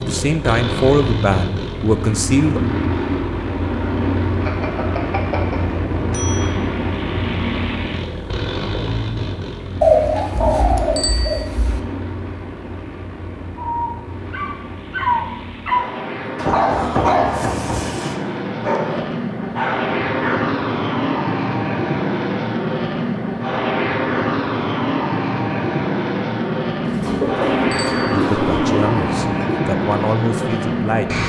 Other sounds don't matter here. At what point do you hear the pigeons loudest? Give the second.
10 s.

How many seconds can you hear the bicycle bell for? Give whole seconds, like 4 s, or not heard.
3 s.